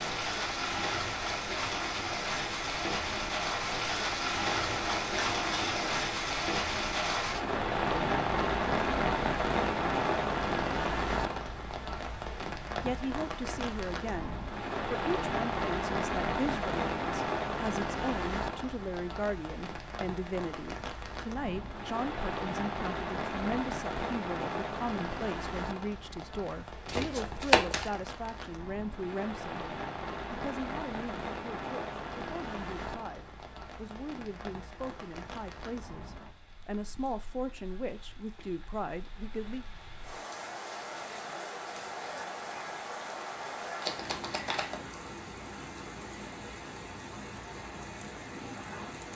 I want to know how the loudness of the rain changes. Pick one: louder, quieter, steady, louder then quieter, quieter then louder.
quieter.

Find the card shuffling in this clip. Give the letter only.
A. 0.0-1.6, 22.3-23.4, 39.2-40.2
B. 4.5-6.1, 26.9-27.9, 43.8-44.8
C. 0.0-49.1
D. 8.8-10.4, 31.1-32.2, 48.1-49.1
B.